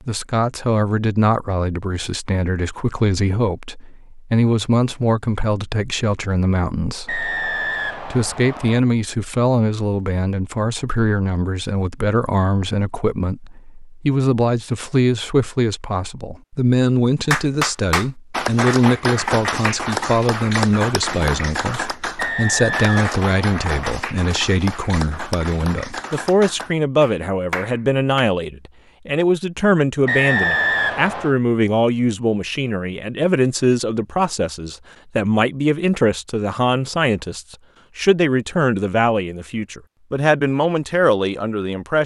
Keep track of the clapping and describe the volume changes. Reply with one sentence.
The volume of the clapping goes down.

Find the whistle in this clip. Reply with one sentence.
The whistle can be heard from 7.0 to 8.8 s, from 22.1 to 23.8 s and from 30.1 to 31.4 s.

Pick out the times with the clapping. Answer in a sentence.
You can hear the clapping from 17.3 to 28.2 s.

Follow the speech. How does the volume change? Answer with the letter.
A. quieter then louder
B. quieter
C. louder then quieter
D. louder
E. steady
E.